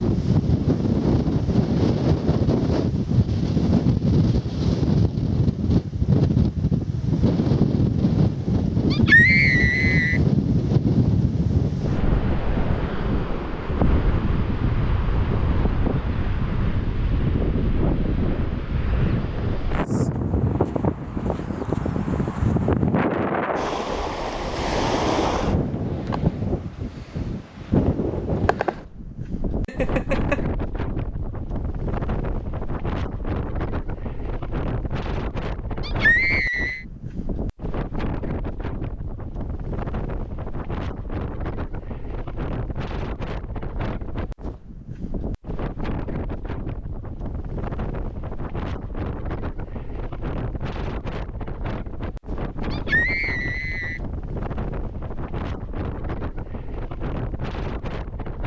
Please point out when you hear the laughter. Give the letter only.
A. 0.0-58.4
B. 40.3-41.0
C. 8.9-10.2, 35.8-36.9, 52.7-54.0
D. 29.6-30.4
D.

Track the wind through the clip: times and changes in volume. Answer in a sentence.
You can hear the wind from 0.0 to 58.4 s, getting quieter.